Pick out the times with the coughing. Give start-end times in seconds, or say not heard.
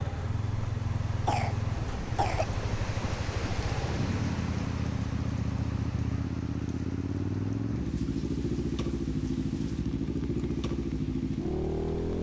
1.2-2.5.